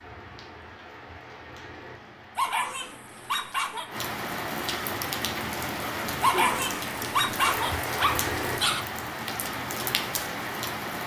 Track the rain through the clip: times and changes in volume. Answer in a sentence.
The rain can be heard from 0.0 to 11.0 s, getting louder.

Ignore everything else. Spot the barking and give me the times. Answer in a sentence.
The barking can be heard from 2.4 to 3.9 s and from 6.2 to 8.8 s.